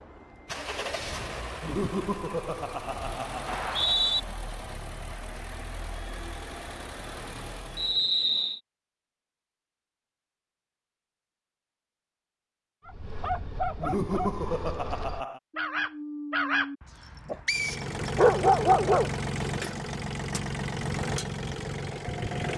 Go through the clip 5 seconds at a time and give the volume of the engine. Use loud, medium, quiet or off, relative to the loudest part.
medium, medium, off, loud, loud.